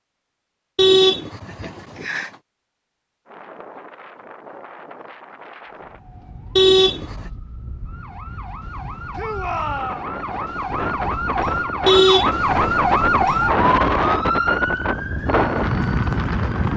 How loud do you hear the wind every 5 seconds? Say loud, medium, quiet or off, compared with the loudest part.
quiet, quiet, loud, loud.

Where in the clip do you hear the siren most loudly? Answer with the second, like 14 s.
13 s.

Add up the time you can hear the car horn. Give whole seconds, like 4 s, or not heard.
3 s.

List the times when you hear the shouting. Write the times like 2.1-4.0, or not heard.
9.2-10.1.